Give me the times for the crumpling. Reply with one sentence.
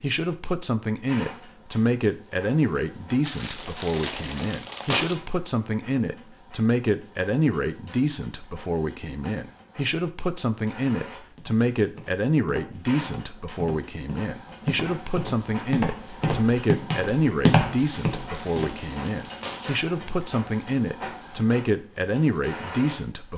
The crumpling can be heard from 3.2 to 5.2 s and from 17.8 to 19.7 s.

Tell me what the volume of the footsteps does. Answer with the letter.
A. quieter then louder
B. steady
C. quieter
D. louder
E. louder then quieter
D.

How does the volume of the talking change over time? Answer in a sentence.
The volume of the talking stays about the same.